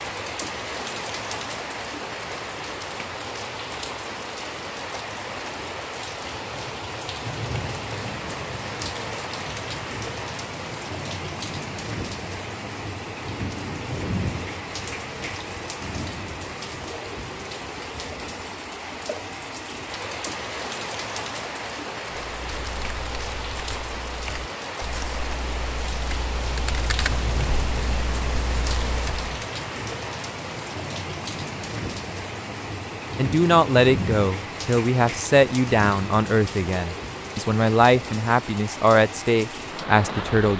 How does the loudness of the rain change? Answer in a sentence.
The volume of the rain stays about the same.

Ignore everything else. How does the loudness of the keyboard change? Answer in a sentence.
The loudness of the keyboard goes up.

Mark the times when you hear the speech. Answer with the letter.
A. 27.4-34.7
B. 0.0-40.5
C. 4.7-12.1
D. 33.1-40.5
D.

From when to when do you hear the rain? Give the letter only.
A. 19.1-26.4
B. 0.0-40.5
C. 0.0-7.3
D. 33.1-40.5
B.